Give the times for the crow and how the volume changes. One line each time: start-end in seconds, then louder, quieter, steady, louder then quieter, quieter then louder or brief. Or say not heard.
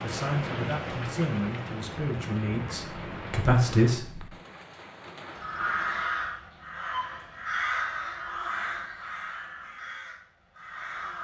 5.3-11.1 quieter.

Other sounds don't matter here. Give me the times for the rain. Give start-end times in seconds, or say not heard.
0.0-6.1.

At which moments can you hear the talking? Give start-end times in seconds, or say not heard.
0.0-4.3.